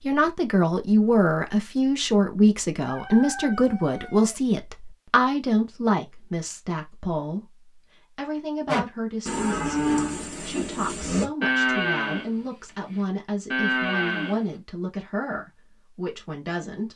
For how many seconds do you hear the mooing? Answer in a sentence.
You can hear the mooing for 6 seconds altogether.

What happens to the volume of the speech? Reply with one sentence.
The loudness of the speech goes down.